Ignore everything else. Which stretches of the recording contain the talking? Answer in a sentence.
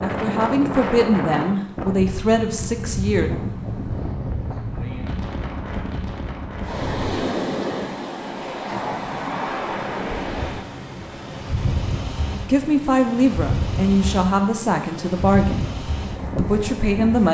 You can hear the talking from 0.0 to 3.3 s and from 12.4 to 17.2 s.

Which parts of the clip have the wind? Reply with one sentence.
You can hear the wind from 0.0 to 17.2 s.